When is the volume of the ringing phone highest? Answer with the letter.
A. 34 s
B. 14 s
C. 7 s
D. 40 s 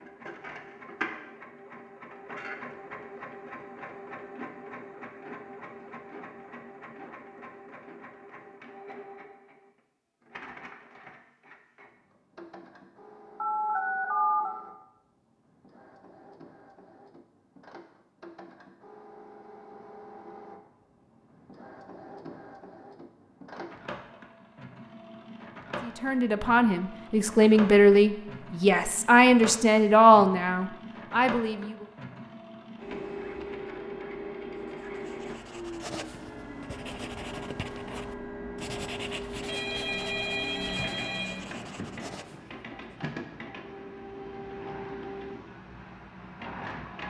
B.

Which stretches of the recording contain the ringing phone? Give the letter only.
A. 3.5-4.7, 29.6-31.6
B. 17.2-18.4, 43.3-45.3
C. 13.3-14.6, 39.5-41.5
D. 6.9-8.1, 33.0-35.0
C.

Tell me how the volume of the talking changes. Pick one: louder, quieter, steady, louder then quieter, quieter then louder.
louder then quieter.